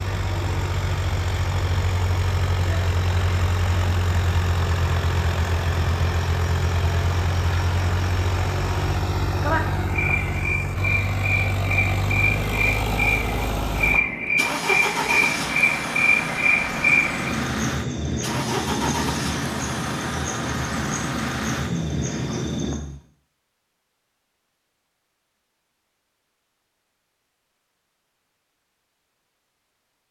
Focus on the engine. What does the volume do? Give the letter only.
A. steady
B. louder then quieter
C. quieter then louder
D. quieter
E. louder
A.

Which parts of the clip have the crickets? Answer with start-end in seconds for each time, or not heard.
0.0-22.8.